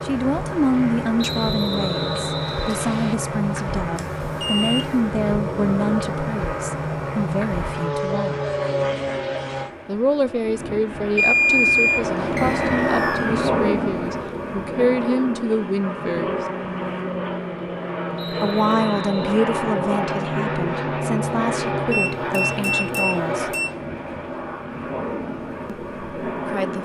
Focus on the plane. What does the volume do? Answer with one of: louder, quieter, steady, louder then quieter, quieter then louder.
steady.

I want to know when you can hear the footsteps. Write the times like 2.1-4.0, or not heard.
not heard.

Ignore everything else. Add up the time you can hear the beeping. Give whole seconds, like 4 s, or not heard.
4 s.